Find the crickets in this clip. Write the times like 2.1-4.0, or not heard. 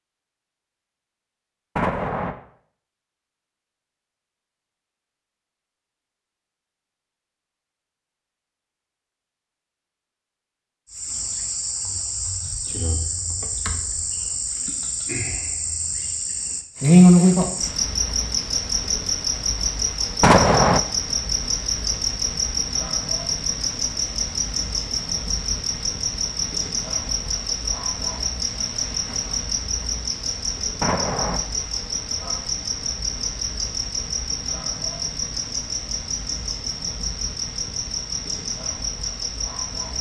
10.9-39.9.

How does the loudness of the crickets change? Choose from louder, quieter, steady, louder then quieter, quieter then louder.
louder then quieter.